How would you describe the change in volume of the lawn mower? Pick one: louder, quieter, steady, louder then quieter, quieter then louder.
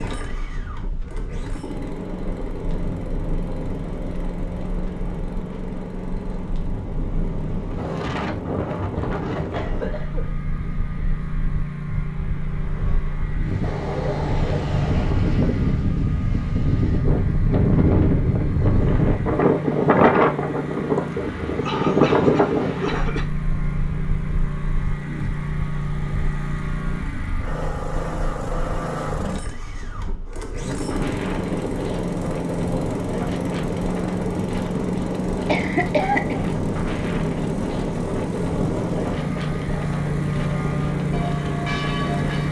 louder.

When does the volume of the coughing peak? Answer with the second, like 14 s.
36 s.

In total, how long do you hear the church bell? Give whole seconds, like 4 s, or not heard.
2 s.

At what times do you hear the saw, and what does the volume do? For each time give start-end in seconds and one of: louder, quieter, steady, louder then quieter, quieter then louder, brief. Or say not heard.
not heard.